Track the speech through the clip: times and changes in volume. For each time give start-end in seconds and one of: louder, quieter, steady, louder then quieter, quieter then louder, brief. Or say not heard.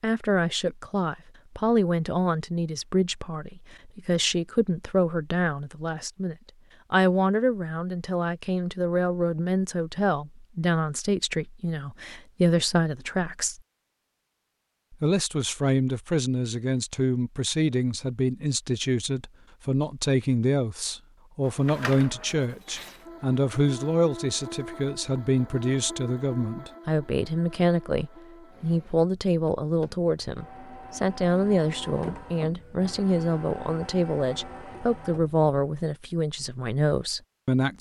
0.0-13.6 steady
14.9-37.7 steady.